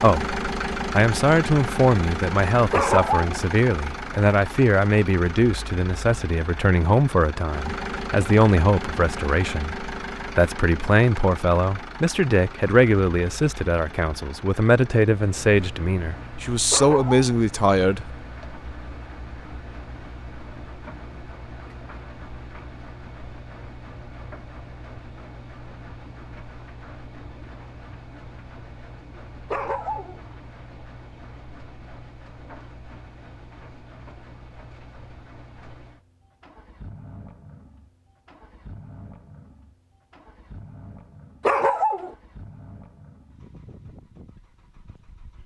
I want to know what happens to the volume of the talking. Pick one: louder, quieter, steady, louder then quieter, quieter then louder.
steady.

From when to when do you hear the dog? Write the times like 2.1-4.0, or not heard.
2.7-3.4, 16.7-17.3, 29.5-30.2, 41.5-42.1.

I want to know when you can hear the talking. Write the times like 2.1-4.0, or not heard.
0.0-18.1.